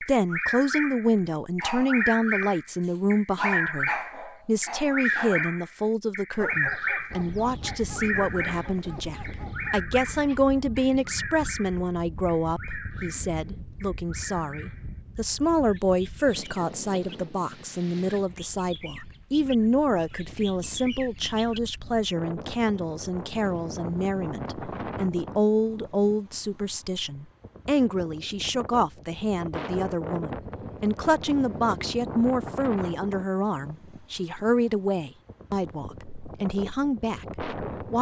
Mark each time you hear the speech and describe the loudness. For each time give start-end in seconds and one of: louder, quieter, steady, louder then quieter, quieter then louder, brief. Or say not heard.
0.0-37.9 steady.